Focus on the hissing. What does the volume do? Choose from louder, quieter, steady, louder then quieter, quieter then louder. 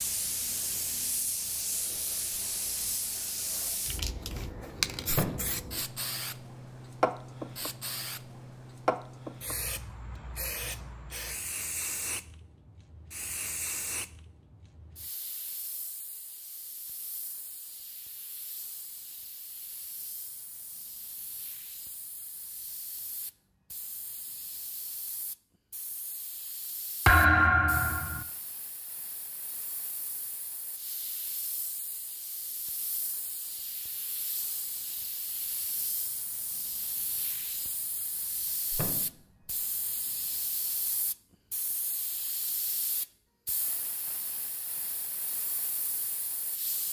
quieter then louder.